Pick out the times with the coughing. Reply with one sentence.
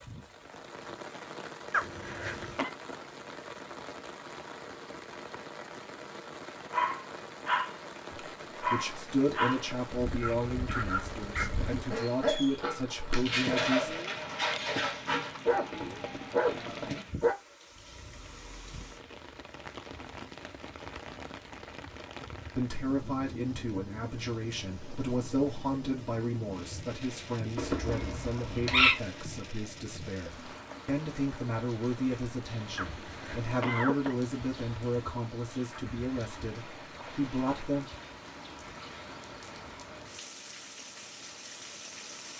The coughing can be heard from 1.7 to 2.7 s and from 32.8 to 34.1 s.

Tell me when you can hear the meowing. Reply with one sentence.
You can hear the meowing from 27.6 to 28.9 s.